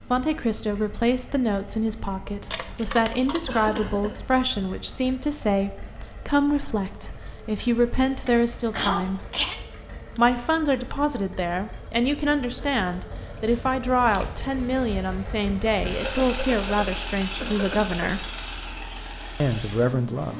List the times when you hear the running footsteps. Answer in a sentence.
The running footsteps can't be heard in this clip.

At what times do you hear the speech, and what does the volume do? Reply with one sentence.
You can hear the speech from 0.1 to 9.2 s, at a steady volume; from 10.2 to 18.2 s, at a steady volume; and briefly from 19.4 to 20.3 s.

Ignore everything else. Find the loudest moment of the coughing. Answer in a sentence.
The volume of the coughing peaks at 9 seconds.